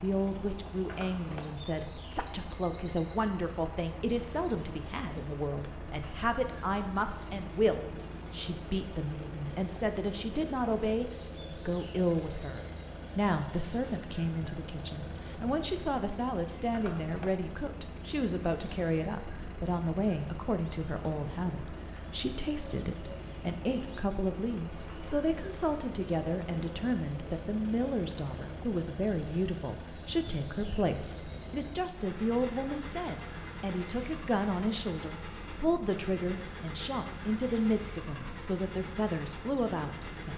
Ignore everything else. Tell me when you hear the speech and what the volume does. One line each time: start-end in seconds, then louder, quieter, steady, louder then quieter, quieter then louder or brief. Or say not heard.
0.0-40.3 steady.